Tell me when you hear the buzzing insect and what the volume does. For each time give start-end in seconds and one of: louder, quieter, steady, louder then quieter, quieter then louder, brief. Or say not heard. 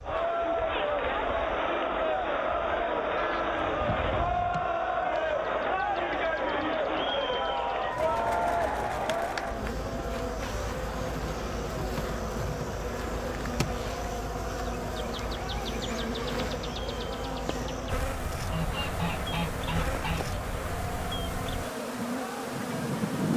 0.0-23.3 louder.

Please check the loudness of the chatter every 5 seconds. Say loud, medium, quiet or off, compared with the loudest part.
loud, loud, quiet, quiet, quiet.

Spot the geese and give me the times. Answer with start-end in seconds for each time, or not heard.
3.1-4.7, 18.5-20.4.